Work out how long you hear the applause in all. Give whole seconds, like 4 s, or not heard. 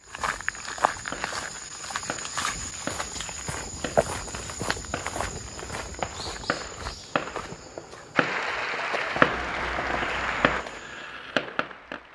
4 s.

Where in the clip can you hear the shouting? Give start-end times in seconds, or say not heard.
not heard.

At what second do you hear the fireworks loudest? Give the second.
9 s.